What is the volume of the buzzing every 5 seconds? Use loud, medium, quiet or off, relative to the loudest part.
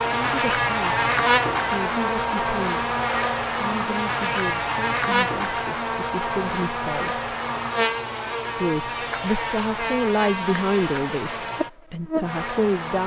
loud, loud, medium.